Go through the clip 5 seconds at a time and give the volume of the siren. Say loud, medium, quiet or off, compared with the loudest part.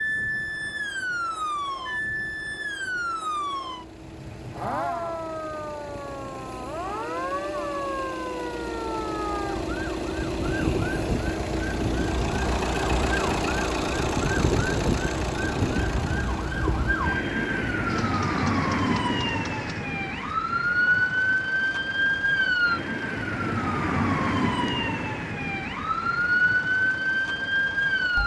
medium, medium, medium, loud, loud, loud.